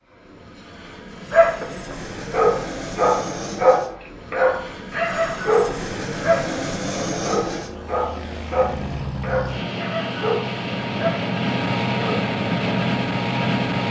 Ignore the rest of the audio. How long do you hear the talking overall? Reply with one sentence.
You can't hear the talking here.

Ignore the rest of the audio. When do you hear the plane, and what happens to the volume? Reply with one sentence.
You can hear the plane from 0.0 to 13.8 s, getting louder.